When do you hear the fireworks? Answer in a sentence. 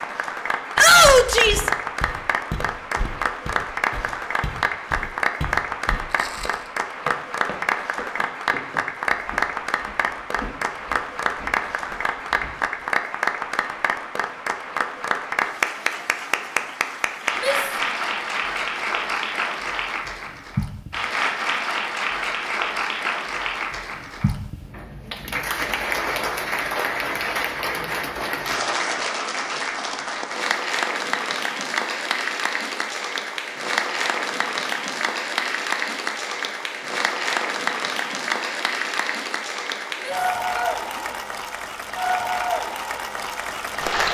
You can't hear the fireworks here.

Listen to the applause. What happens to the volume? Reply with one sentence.
The volume of the applause stays about the same.